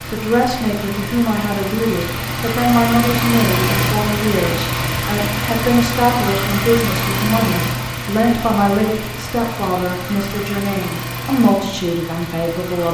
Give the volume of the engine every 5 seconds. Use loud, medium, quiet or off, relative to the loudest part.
loud, loud, medium.